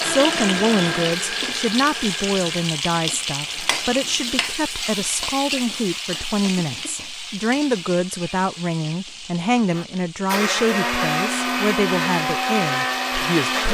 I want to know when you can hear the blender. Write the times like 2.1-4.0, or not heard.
0.0-4.7, 9.7-13.6.